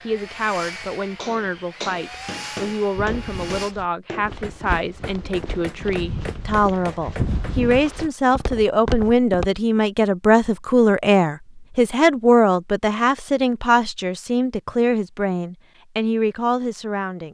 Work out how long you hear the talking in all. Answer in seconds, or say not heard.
17 s.